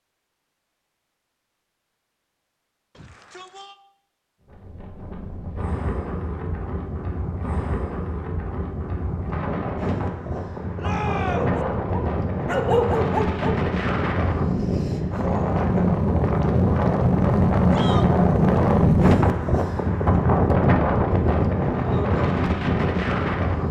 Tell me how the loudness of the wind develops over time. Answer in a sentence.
The loudness of the wind goes up.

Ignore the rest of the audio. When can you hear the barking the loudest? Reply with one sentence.
The loudest moment of the barking is at 13 seconds.